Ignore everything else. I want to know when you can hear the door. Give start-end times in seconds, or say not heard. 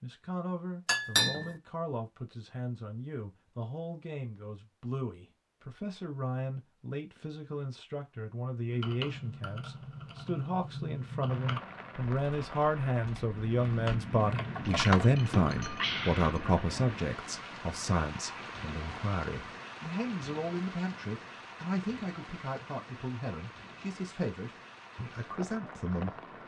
not heard.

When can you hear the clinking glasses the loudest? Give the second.
1 s.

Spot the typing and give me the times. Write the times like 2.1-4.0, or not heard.
8.7-15.1.